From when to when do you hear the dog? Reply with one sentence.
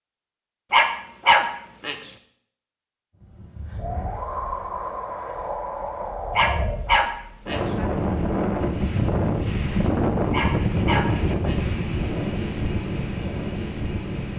The dog can be heard from 0.7 to 2.1 s, from 6.3 to 7.6 s and from 10.3 to 11.7 s.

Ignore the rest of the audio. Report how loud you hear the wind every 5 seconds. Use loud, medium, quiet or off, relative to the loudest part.
medium, loud, loud.